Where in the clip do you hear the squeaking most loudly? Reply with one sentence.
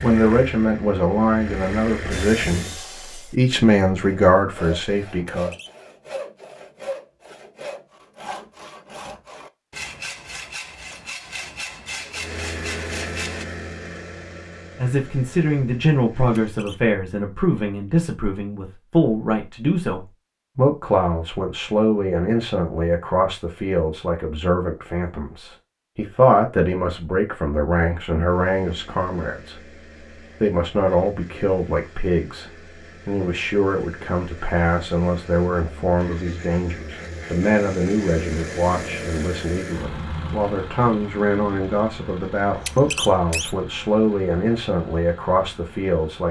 The volume of the squeaking peaks at 43 seconds.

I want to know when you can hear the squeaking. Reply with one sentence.
The squeaking can be heard from 5.2 to 5.7 s, from 16.4 to 16.8 s and from 42.5 to 43.5 s.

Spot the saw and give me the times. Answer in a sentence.
The saw can be heard from 2.1 to 13.4 s.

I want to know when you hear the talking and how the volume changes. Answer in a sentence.
The talking can be heard briefly from 0.0 to 2.6 s; briefly from 3.3 to 5.5 s; from 14.8 to 29.7 s, at a steady volume; and from 30.4 to 46.2 s, at a steady volume.